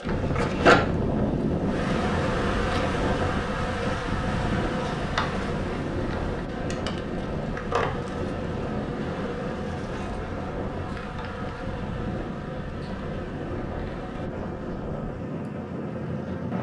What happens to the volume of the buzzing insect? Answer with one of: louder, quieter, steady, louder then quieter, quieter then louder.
quieter.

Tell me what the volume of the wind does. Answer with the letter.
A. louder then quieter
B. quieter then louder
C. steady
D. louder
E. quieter
E.